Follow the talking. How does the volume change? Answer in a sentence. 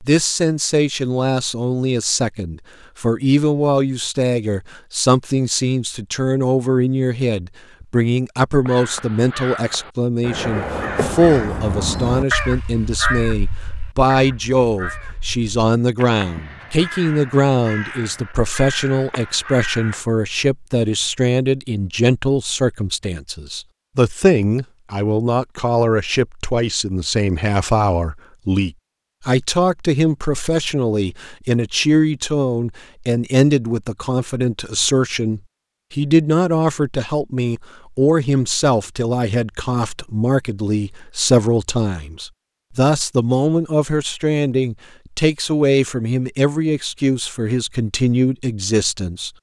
The volume of the talking stays about the same.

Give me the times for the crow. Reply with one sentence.
You can hear the crow from 8.7 to 20.1 s.